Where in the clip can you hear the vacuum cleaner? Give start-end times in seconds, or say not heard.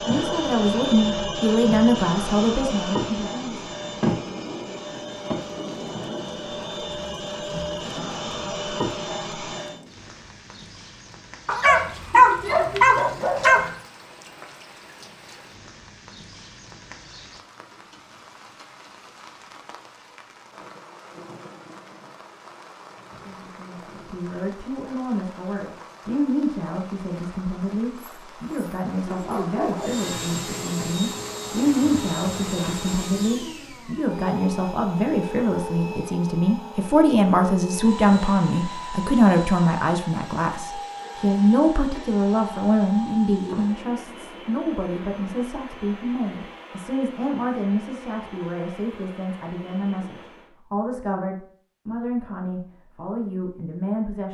0.0-9.8, 29.8-50.5.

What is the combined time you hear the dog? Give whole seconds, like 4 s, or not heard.
4 s.